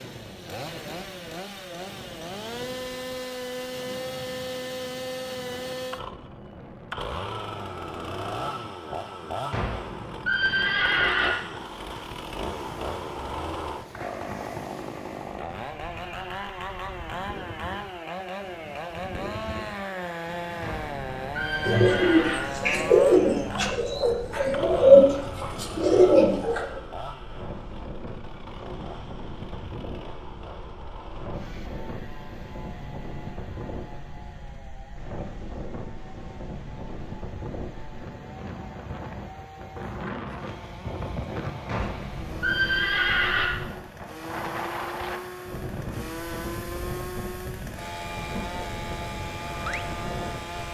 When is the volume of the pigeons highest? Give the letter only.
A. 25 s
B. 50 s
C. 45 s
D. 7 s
A.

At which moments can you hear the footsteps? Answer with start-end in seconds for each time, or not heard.
not heard.